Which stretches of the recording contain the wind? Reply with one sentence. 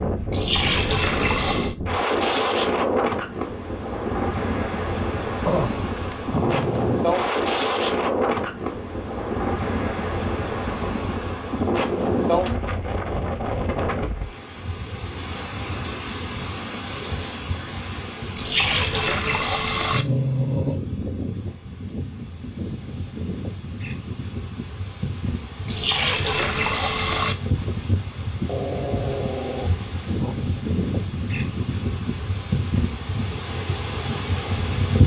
The wind can be heard from 0.0 to 35.0 s.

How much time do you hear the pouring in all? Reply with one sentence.
You can hear the pouring for 5 seconds altogether.